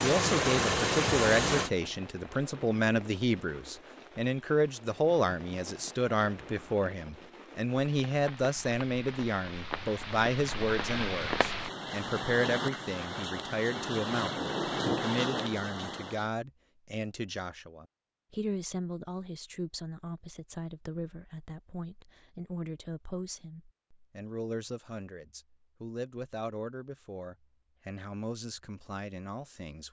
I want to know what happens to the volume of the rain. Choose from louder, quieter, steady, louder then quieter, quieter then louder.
louder.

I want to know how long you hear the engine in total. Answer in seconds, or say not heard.
2 s.